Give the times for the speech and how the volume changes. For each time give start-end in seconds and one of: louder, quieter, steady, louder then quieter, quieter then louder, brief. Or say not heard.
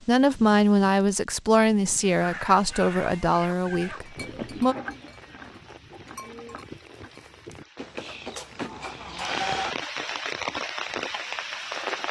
0.1-4.8 quieter.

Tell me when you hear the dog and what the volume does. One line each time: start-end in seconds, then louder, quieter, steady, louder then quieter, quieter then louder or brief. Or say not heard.
not heard.